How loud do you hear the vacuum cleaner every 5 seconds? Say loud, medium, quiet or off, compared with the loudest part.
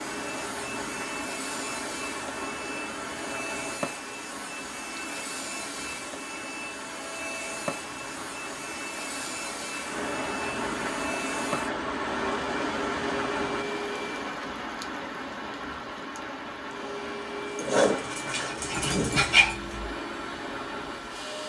loud, loud, loud, loud, medium.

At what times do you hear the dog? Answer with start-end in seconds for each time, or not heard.
17.6-19.9.